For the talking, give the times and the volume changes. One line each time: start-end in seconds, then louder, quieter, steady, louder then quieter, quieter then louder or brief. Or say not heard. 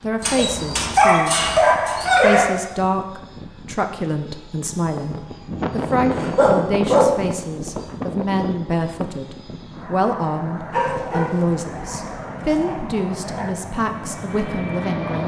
0.0-1.5 brief
2.2-15.2 steady.